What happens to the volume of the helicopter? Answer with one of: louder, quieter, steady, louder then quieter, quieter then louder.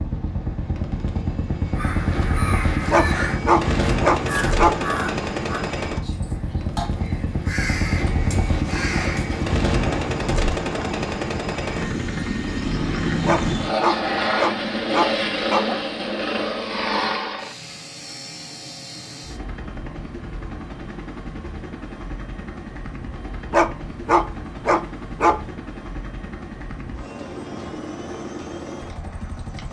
quieter.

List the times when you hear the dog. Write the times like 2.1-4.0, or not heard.
2.9-4.8, 13.2-15.8, 23.5-25.4.